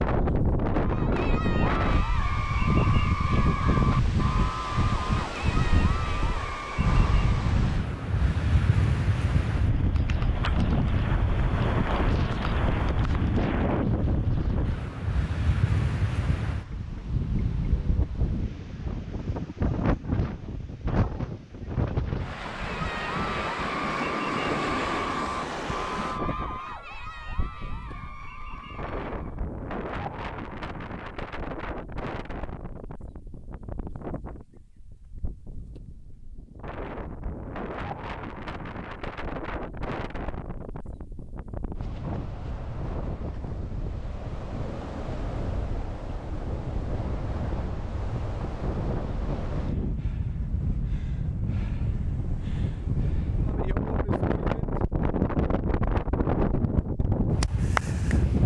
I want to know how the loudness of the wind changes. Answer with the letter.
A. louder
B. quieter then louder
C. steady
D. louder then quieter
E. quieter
B.